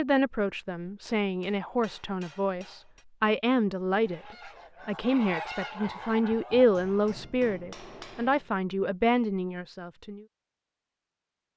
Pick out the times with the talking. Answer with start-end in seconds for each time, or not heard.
0.0-10.2.